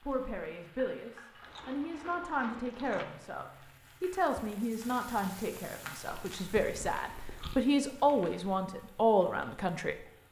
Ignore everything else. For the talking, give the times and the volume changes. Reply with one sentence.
The talking can be heard from 0.0 to 9.9 s, getting louder.